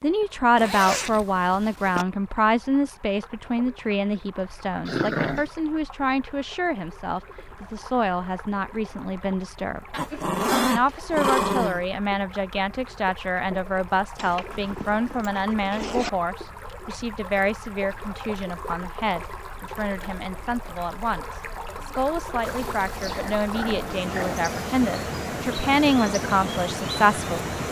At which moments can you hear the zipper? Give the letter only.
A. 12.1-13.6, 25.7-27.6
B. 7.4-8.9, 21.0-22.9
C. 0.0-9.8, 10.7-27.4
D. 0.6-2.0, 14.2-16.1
D.